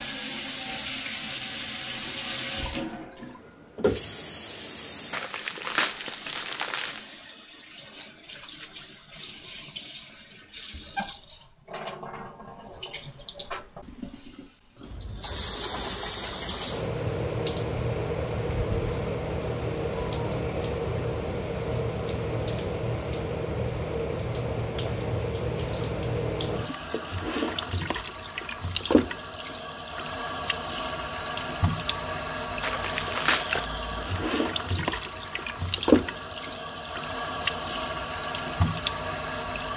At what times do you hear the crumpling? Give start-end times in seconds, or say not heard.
5.1-7.0, 32.6-33.7.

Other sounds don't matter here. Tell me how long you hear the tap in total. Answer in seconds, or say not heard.
40 s.